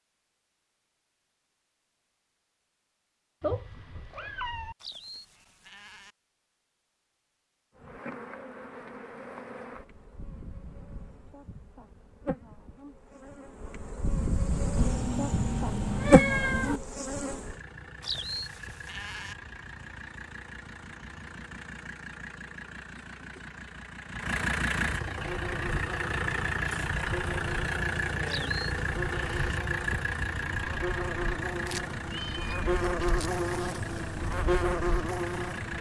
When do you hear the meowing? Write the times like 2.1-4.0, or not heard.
3.4-4.8, 14.8-16.8, 31.6-33.3.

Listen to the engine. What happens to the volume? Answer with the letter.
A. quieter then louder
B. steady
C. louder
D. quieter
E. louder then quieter
E.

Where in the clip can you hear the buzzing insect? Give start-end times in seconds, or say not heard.
7.8-17.6, 25.2-35.7.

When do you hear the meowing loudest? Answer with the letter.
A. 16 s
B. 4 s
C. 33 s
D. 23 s
A.